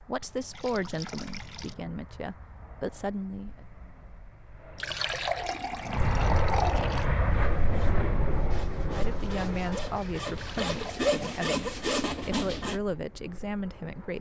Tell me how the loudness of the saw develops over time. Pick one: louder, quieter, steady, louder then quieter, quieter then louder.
louder.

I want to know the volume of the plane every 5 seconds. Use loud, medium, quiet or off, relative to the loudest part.
quiet, loud, quiet.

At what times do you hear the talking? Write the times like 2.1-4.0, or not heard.
0.1-3.6, 8.9-14.1.